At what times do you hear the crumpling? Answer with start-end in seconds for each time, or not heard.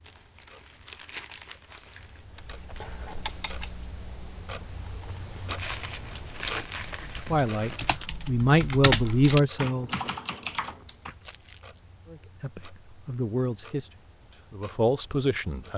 0.0-2.2, 5.5-8.0, 11.2-11.8.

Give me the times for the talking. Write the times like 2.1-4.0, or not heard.
7.2-9.9, 12.1-15.7.